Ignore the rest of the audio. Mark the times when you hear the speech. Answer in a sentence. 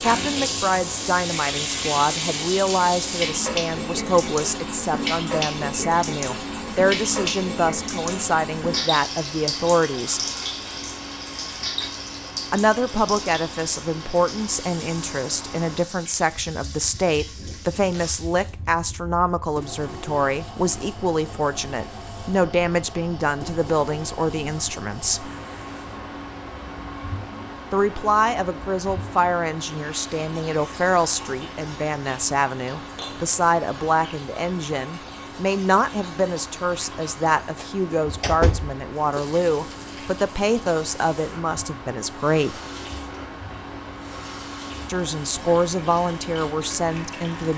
You can hear the speech from 0.0 to 10.2 s, from 12.5 to 25.3 s, from 27.7 to 42.6 s and from 44.9 to 47.5 s.